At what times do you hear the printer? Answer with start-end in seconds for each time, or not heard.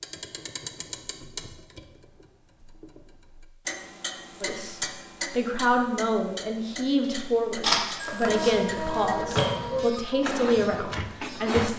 8.2-11.7.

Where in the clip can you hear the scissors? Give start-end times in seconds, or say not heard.
7.0-8.6.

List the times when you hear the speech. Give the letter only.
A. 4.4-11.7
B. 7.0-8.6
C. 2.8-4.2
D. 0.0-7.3
A.